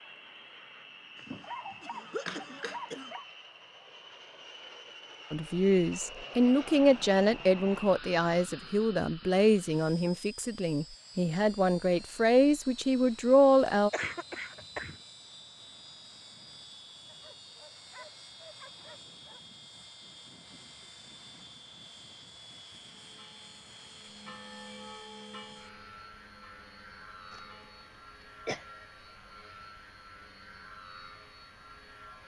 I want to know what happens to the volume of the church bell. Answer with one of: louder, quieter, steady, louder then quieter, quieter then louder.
louder then quieter.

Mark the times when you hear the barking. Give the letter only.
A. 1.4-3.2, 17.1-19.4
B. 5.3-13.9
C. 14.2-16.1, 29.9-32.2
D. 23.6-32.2
A.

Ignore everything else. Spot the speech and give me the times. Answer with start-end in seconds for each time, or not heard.
5.3-13.9.